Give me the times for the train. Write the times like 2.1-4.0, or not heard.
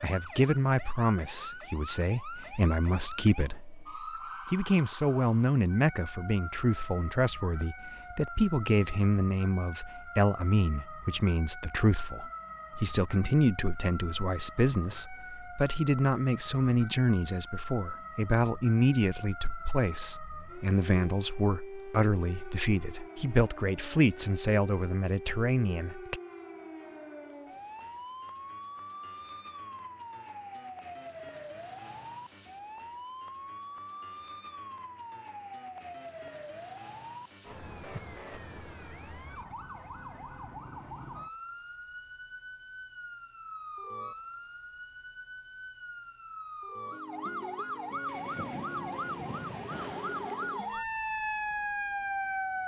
47.8-50.9.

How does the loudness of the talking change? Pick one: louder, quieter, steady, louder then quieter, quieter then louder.
steady.